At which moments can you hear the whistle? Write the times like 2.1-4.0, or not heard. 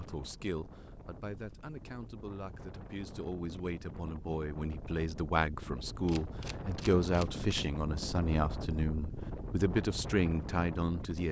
not heard.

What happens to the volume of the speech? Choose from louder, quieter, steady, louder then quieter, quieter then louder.
louder.